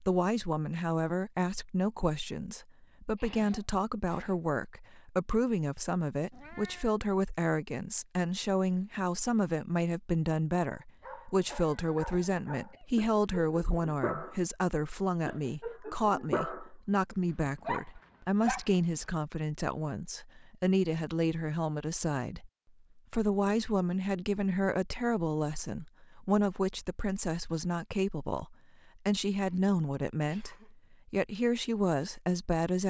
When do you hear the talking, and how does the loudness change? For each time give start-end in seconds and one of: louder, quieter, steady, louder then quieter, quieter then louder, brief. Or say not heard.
0.0-32.8 steady.